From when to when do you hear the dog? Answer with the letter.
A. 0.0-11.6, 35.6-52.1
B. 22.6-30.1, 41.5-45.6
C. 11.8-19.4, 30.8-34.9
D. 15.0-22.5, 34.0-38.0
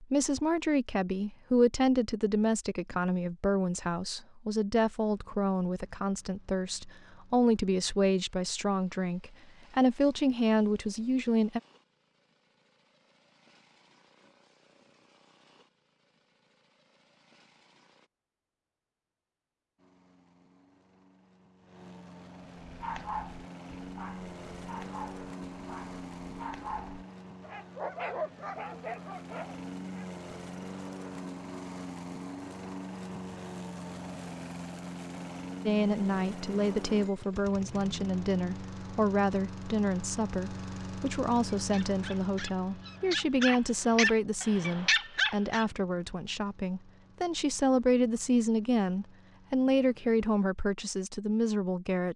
B.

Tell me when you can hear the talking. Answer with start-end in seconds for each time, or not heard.
0.0-11.6, 35.6-52.1.